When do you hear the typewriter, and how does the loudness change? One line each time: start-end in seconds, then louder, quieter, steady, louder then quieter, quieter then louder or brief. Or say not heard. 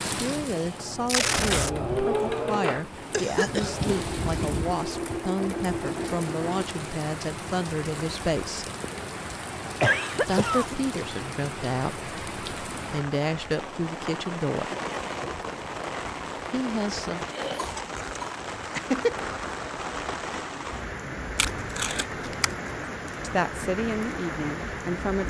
not heard.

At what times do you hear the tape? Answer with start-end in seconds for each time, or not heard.
1.1-1.7, 10.2-10.8, 21.4-22.6.